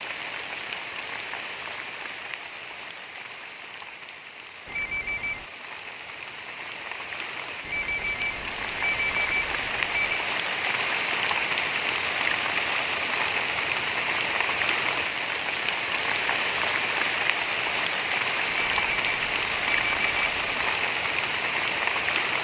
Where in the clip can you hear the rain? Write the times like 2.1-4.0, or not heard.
0.0-22.3.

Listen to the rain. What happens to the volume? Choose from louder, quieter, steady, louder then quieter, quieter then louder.
louder.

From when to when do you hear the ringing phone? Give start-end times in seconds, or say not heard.
4.7-5.5, 7.7-10.2, 18.5-20.6.